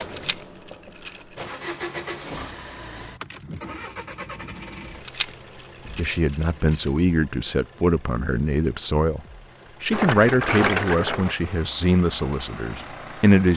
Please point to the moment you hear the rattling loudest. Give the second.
11 s.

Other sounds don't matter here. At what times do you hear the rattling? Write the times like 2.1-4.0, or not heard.
0.1-1.4, 5.0-6.9, 9.9-11.3.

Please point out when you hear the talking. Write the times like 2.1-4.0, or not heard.
6.0-9.2, 9.8-13.5.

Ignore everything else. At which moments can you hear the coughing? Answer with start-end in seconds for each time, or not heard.
not heard.